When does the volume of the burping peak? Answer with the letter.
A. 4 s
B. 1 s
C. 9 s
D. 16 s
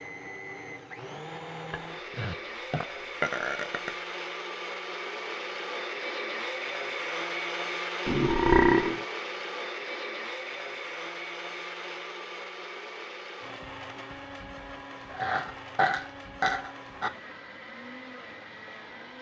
C.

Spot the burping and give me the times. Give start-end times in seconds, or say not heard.
1.7-3.9, 8.1-9.1, 15.1-17.1.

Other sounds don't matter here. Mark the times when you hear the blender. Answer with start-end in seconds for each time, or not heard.
0.0-19.1.